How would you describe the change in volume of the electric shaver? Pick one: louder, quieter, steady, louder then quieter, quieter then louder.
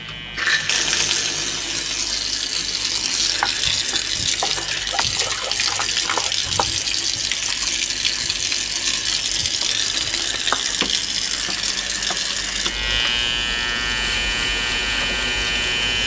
louder.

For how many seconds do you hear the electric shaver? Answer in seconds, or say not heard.
16 s.